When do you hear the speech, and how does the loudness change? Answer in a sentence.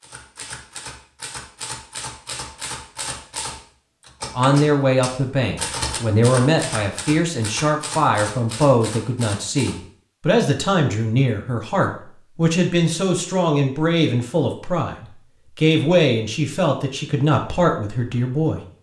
You can hear the speech from 4.3 to 18.6 s, at a steady volume.